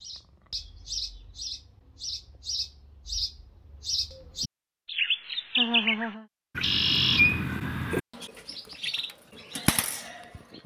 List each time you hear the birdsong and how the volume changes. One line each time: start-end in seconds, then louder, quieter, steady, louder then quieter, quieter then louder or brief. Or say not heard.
0.0-10.6 louder then quieter.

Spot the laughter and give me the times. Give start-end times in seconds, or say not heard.
5.5-6.2.